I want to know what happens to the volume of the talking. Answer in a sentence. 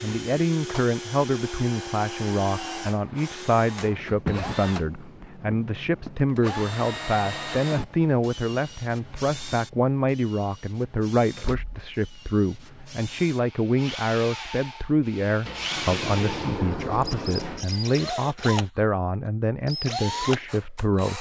The volume of the talking stays about the same.